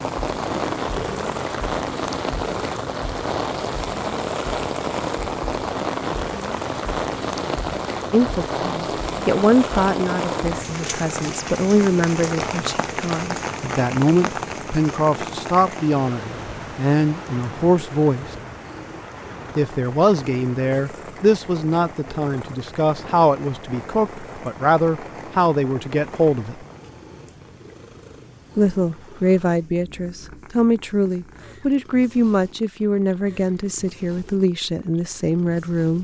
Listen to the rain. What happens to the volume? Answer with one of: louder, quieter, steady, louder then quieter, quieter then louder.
quieter.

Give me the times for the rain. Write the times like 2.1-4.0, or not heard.
0.0-26.9.